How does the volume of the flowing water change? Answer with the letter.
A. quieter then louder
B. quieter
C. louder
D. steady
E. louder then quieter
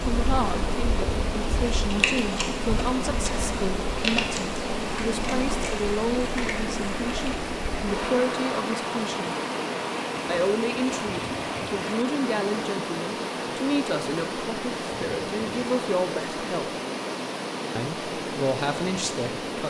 D.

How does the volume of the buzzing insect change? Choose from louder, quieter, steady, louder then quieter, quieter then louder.
quieter.